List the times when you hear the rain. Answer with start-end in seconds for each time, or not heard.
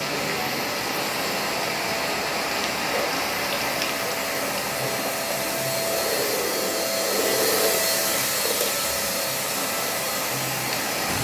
0.0-11.1.